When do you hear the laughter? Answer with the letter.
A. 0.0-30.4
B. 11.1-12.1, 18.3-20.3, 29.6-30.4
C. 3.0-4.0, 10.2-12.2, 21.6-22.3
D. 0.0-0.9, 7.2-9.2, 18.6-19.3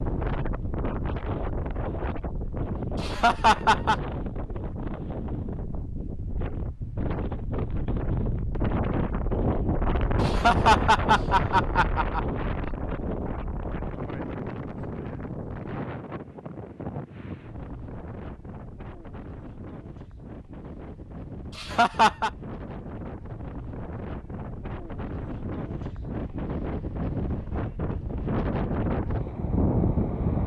C.